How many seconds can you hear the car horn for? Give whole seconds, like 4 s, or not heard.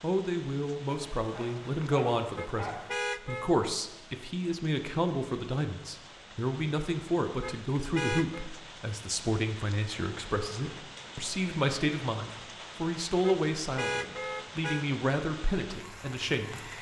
4 s.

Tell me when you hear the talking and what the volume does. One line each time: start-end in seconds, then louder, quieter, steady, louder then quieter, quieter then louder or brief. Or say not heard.
0.0-16.7 steady.